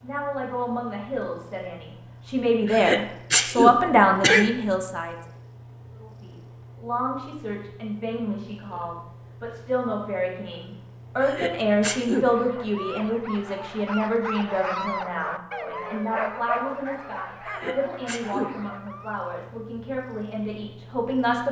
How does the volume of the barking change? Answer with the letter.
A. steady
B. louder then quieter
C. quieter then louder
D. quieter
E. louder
B.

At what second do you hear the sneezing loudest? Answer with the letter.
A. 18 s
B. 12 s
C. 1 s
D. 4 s
D.